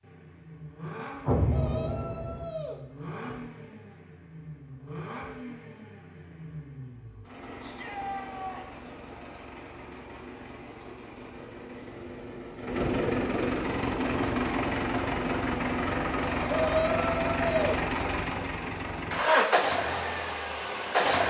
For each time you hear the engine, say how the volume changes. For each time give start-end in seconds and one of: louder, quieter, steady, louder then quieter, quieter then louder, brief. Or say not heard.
0.0-21.2 louder.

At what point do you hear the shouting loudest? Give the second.
17 s.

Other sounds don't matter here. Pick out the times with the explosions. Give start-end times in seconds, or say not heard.
1.2-2.5.